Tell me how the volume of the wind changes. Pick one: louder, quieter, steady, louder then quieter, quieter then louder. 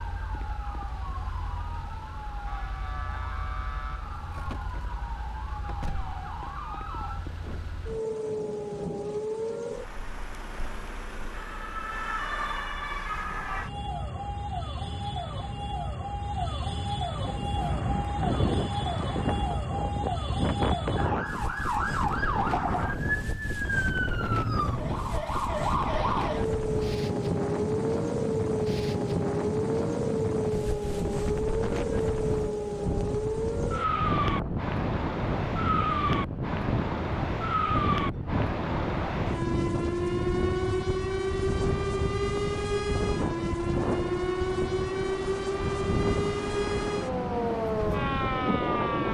steady.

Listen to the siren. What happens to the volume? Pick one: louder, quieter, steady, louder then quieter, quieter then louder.
louder.